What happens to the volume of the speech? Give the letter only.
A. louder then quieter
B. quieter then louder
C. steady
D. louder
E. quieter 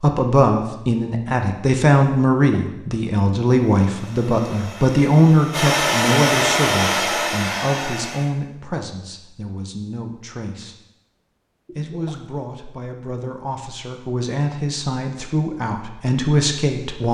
B.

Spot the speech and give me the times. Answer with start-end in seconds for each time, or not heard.
0.0-10.8, 11.7-17.0.